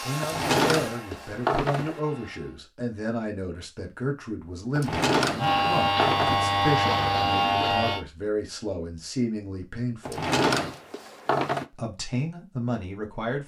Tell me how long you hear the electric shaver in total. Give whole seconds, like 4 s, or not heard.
3 s.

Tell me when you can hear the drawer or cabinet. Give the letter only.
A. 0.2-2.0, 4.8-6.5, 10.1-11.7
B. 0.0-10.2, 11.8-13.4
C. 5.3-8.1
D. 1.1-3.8
A.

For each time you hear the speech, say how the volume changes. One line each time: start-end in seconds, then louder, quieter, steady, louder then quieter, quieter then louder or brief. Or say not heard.
0.0-10.2 steady
11.8-13.4 brief.